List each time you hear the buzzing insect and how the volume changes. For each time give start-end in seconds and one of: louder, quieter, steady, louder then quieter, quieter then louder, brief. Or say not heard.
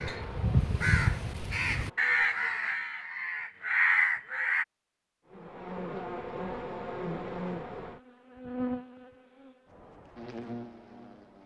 0.0-2.3 brief
5.3-11.4 quieter then louder.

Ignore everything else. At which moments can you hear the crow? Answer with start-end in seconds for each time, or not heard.
0.0-4.7.